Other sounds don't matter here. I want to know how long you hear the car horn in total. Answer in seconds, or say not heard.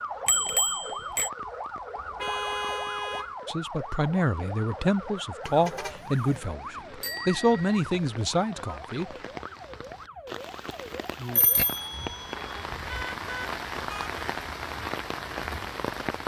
4 s.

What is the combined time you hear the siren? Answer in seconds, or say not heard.
12 s.